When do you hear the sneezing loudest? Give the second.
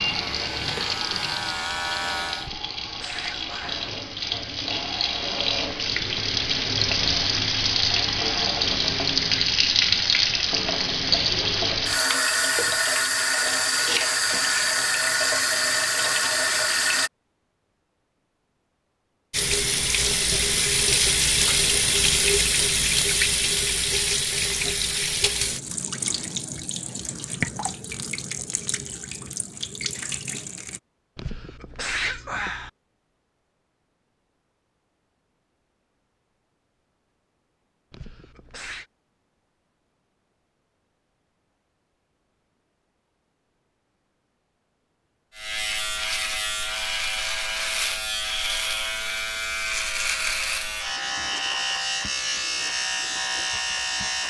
32 s.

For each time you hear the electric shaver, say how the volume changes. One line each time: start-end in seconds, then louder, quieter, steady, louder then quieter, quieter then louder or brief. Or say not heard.
0.0-2.5 brief
45.4-54.2 steady.